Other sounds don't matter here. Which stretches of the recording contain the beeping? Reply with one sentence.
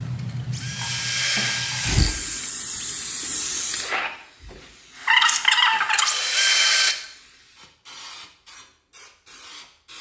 You can't hear the beeping here.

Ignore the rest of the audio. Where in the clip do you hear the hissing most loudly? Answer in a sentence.
The loudest moment of the hissing is at 2 seconds.